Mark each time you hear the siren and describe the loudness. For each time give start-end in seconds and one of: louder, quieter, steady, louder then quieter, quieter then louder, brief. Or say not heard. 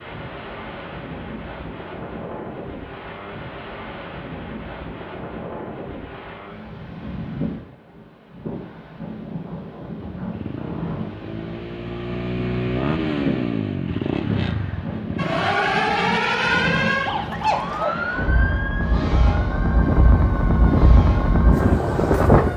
15.2-22.5 quieter.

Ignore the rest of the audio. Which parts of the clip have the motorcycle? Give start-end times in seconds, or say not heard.
10.2-15.6.